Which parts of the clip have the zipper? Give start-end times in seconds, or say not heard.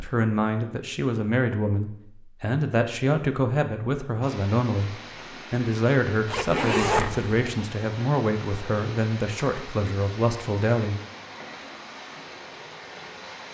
6.2-7.5.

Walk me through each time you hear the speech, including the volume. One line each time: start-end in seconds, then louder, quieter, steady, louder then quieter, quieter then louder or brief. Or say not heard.
0.0-11.0 steady.